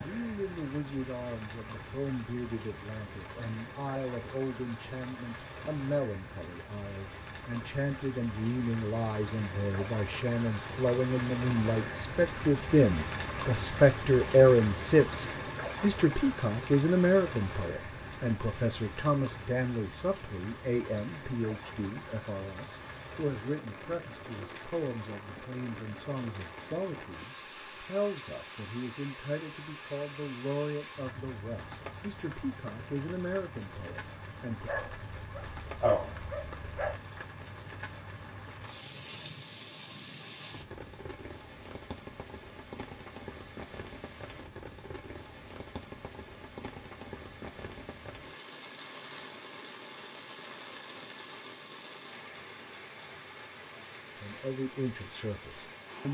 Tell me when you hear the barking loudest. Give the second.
36 s.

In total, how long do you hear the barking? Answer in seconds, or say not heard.
2 s.